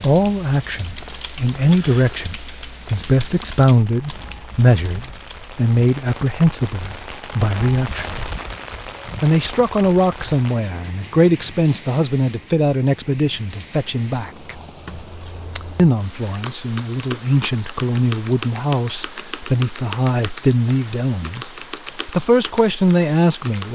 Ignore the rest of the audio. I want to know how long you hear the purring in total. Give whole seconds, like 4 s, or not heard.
not heard.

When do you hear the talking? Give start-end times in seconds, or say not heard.
0.0-8.3, 9.2-14.6, 15.8-23.7.